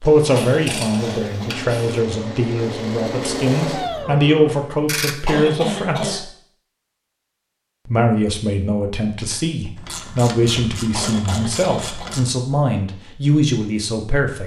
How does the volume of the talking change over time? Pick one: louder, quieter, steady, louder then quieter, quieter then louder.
steady.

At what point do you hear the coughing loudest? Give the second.
6 s.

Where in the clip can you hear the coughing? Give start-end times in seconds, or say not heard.
0.3-1.6, 5.2-6.2, 10.9-12.2.